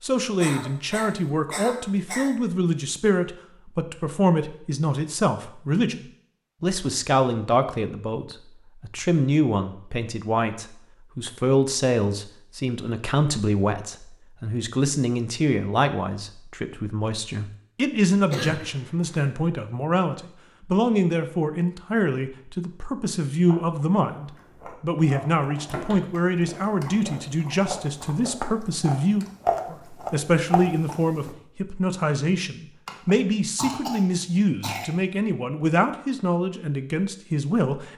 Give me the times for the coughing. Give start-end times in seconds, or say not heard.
0.3-2.3, 18.3-19.3, 32.9-34.9.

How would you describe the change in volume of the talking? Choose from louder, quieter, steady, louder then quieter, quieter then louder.
steady.